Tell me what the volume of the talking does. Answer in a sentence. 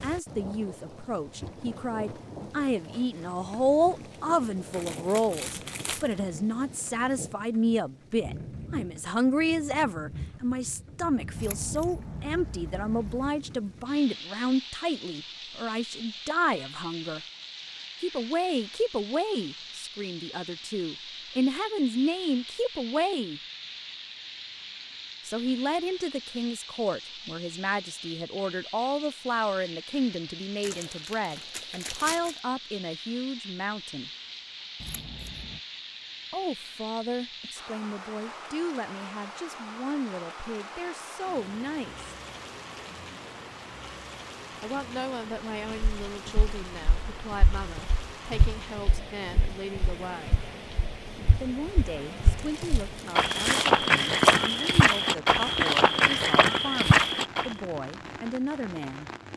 The volume of the talking goes down.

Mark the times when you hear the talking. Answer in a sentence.
The talking can be heard from 0.0 to 17.2 s, from 18.0 to 23.4 s, from 25.2 to 34.1 s, from 36.3 to 42.1 s, from 44.6 to 50.4 s and from 51.4 to 59.0 s.